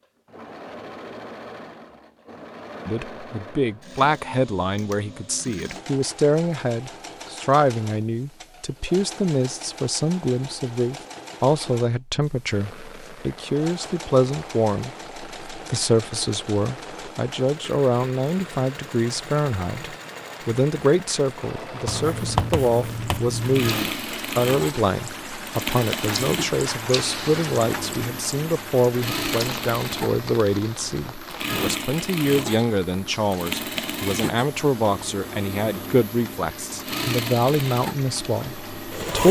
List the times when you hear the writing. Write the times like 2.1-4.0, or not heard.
21.9-23.6.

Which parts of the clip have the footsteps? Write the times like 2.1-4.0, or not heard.
not heard.